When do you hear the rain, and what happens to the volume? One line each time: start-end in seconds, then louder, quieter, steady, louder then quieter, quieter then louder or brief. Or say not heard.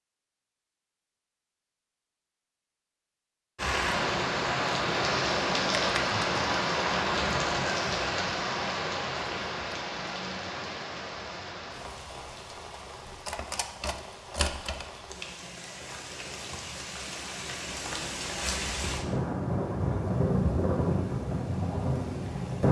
3.5-22.6 quieter then louder.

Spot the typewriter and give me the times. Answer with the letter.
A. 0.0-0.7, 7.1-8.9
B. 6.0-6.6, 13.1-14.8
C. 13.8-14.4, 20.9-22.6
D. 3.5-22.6
B.